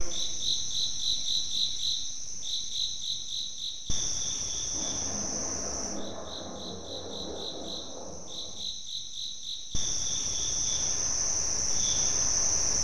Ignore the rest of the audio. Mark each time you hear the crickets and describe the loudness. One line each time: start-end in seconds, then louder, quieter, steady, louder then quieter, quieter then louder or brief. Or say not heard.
0.0-12.8 quieter then louder.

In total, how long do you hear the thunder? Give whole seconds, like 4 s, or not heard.
4 s.